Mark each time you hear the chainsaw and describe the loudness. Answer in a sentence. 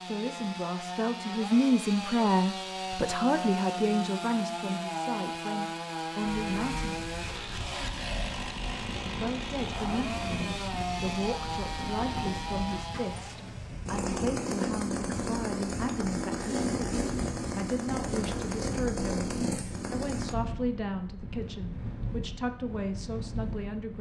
You can hear the chainsaw from 0.0 to 20.4 s, at a steady volume.